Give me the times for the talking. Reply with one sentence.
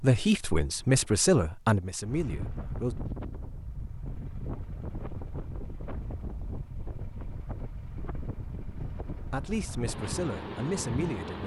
The talking can be heard from 0.0 to 3.0 s and from 9.3 to 11.4 s.